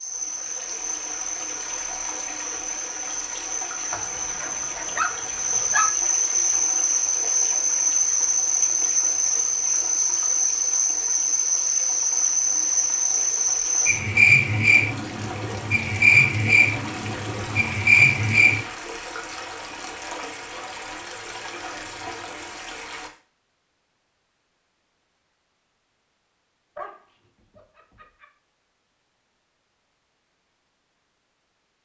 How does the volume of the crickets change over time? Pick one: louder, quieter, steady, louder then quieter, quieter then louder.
louder.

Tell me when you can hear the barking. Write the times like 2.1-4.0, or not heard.
3.9-6.0, 26.8-28.2.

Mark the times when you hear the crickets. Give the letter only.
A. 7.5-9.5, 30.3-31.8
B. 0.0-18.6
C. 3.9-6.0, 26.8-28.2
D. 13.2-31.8
B.